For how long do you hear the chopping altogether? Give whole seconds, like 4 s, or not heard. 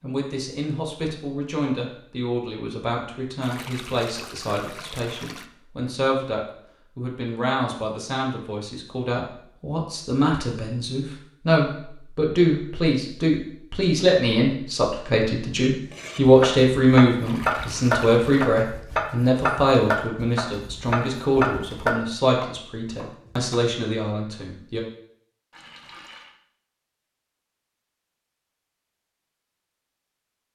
8 s.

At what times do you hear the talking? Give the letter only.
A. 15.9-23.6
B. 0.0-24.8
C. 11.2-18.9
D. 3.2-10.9
B.